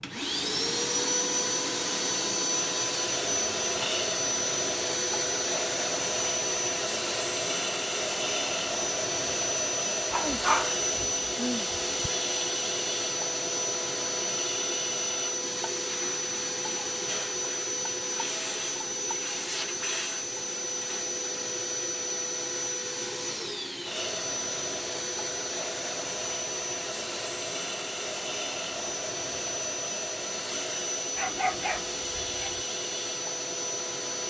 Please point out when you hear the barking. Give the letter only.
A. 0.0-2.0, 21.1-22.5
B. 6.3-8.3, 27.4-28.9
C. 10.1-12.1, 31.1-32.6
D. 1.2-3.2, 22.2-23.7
C.